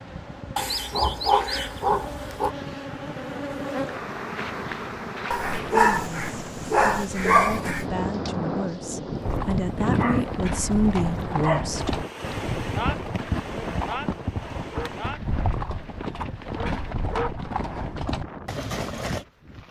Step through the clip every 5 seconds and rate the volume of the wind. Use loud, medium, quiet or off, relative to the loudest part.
medium, loud, loud, medium.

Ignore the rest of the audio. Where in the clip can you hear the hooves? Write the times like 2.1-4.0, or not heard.
9.2-19.2.